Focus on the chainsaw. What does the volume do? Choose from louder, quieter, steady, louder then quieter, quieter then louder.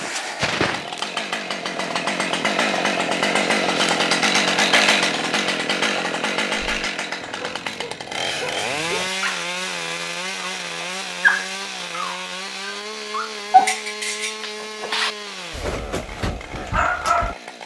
quieter.